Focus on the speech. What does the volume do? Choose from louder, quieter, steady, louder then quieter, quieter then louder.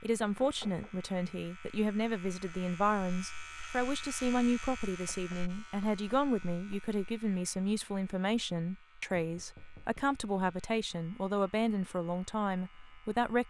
steady.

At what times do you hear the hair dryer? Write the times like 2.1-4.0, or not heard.
not heard.